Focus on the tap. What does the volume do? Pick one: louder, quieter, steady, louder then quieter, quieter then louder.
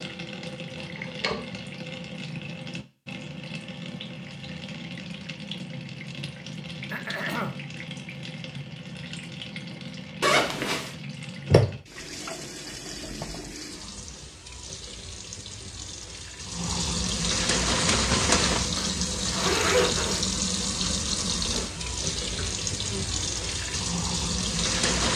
louder.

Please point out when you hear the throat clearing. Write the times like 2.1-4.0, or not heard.
6.9-7.6, 21.5-23.2.